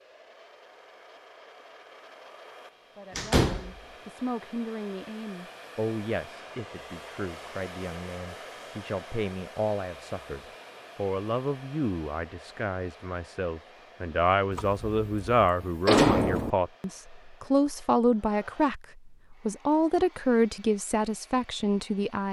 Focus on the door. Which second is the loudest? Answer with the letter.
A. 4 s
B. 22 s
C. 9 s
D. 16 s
D.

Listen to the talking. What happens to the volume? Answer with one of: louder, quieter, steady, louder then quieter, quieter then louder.
louder.